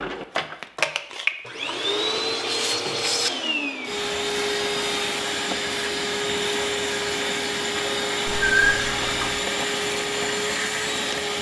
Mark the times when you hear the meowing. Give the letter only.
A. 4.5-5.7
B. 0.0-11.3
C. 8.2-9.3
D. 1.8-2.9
C.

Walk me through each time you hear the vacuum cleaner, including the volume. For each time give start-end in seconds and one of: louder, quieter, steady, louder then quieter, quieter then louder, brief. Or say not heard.
0.0-11.3 steady.